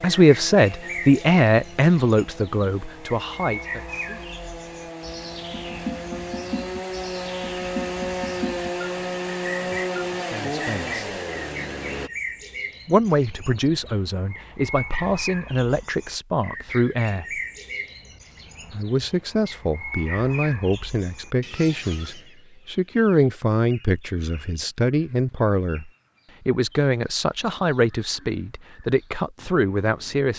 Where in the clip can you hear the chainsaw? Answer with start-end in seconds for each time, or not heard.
0.0-12.1.